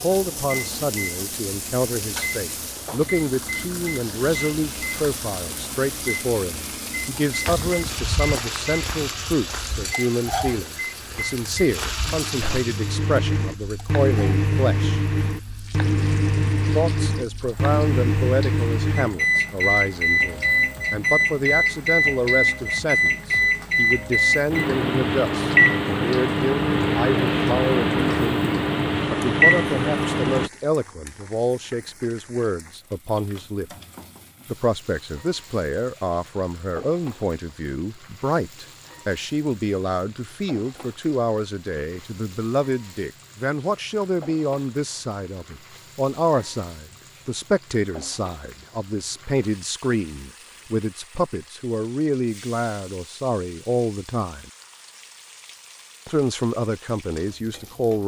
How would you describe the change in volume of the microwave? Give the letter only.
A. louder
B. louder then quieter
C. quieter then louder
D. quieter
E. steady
A.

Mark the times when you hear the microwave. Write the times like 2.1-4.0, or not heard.
0.1-30.5.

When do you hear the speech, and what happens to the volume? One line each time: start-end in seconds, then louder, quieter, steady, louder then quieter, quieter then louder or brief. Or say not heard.
0.0-15.0 steady
16.8-33.7 steady
34.5-54.5 steady
56.0-58.0 brief.